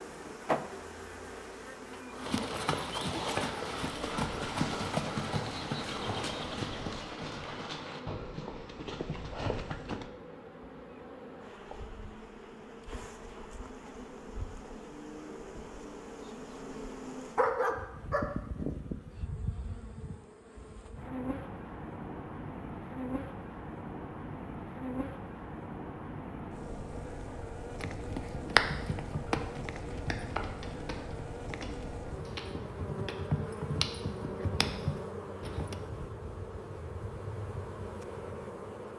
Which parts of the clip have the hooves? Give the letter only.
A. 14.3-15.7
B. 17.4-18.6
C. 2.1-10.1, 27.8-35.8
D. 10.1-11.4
C.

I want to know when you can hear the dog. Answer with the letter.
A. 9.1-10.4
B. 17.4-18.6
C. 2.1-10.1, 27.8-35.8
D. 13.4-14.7
B.